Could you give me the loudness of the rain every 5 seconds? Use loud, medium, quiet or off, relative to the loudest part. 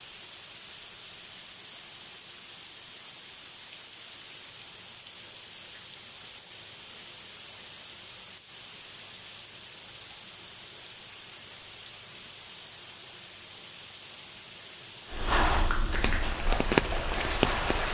quiet, quiet, quiet, loud.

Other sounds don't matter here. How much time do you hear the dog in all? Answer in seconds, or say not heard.
3 s.